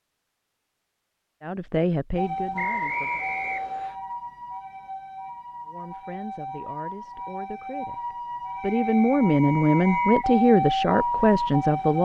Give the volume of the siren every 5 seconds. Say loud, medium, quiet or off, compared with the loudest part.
medium, medium, loud.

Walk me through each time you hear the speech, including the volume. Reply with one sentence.
You can hear the speech briefly from 1.4 to 3.2 s; and from 5.7 to 12.0 s, getting louder.